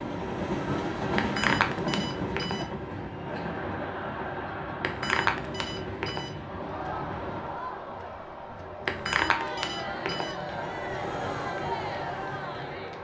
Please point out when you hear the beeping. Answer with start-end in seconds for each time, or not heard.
1.1-2.6, 4.8-6.3, 8.8-10.3.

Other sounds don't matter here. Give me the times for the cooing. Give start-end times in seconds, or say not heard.
not heard.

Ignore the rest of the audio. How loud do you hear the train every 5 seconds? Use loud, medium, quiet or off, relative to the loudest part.
loud, medium, loud.